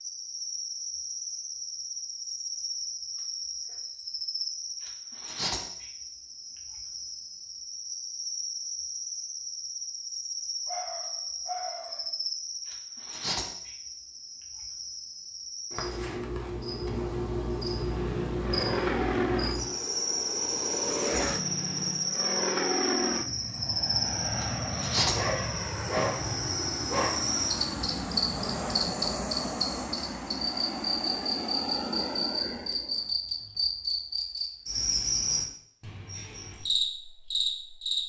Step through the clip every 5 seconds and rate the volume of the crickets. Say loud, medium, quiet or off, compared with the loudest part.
medium, medium, medium, loud, loud, loud, loud, loud.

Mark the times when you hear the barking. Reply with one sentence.
The barking can be heard from 10.7 to 12.1 s and from 25.1 to 27.1 s.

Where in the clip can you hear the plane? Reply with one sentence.
The plane can be heard from 17.7 to 33.0 s.